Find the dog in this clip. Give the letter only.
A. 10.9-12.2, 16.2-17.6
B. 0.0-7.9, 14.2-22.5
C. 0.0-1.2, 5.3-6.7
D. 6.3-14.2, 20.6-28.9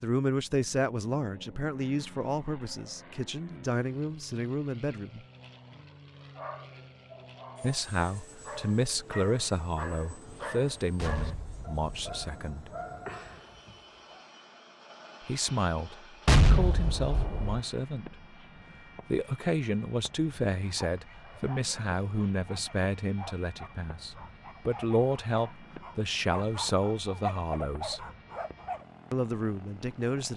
D.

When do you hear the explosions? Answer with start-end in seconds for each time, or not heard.
10.9-12.2, 16.2-17.6.